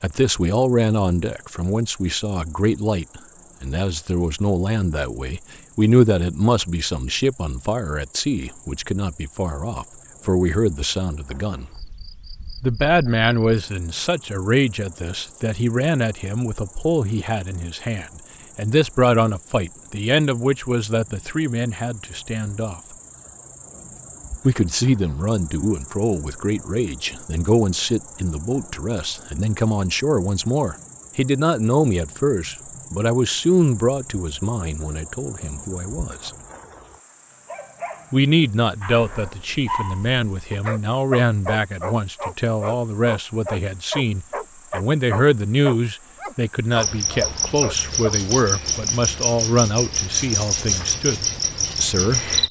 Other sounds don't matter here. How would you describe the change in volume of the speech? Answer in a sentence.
The volume of the speech stays about the same.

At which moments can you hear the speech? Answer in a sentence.
You can hear the speech from 0.0 to 11.7 s, from 12.6 to 22.8 s, from 24.4 to 36.3 s and from 38.1 to 52.3 s.